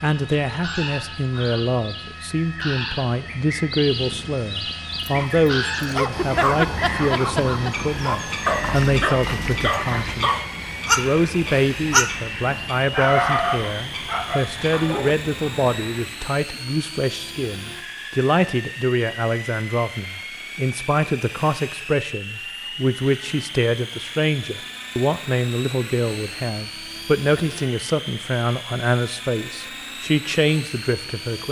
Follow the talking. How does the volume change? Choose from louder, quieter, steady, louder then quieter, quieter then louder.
steady.